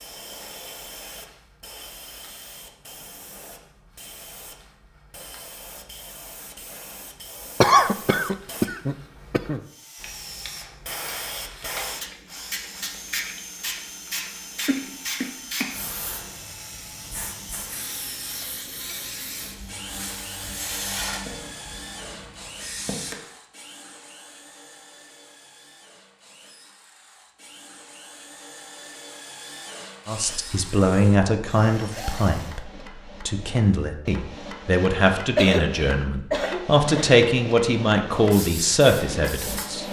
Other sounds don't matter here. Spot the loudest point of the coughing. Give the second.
8 s.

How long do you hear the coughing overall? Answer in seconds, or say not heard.
5 s.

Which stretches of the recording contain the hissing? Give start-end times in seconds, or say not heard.
0.0-23.1, 38.1-39.8.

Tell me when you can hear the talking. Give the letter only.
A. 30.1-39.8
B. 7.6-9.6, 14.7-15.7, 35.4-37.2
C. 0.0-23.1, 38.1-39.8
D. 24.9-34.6
A.